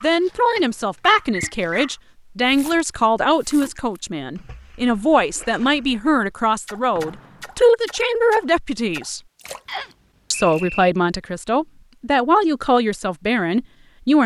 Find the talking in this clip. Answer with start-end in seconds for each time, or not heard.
0.0-9.2, 10.3-14.2.